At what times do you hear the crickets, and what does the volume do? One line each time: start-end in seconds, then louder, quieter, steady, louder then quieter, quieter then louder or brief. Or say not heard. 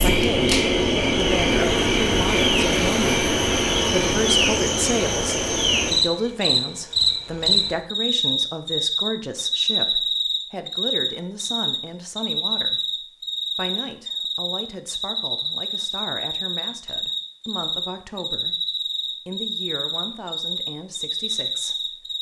0.0-22.1 quieter.